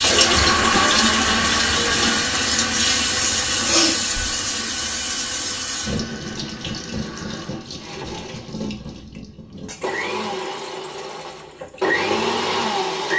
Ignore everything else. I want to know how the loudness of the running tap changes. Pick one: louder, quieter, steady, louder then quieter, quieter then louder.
quieter.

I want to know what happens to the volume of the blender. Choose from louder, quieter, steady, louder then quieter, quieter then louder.
quieter then louder.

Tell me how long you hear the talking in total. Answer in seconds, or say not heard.
not heard.